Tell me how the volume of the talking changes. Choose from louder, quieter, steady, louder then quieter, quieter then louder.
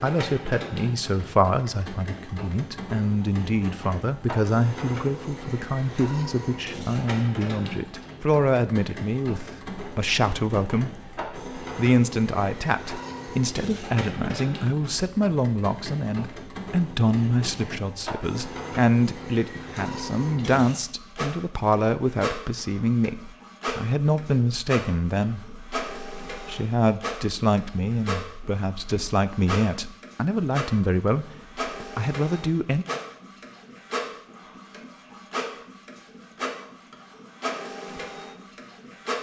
steady.